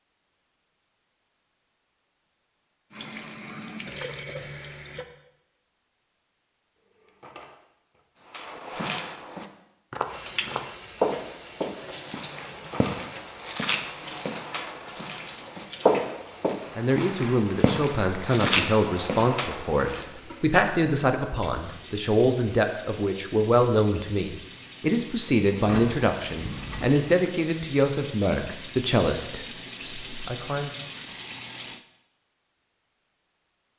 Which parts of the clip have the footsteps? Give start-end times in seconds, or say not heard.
8.3-20.1.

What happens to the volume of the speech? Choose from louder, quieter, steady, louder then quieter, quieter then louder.
steady.